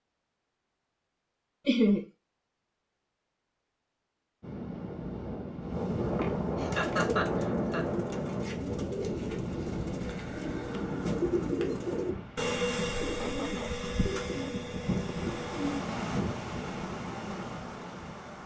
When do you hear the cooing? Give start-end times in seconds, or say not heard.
6.7-15.8.